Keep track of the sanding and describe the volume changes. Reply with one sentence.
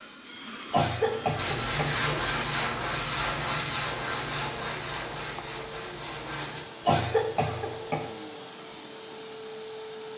The loudness of the sanding goes down.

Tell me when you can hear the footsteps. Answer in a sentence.
The footsteps can't be heard in this clip.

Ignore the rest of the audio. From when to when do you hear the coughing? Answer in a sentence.
You can hear the coughing from 0.7 to 2.2 s and from 6.8 to 8.1 s.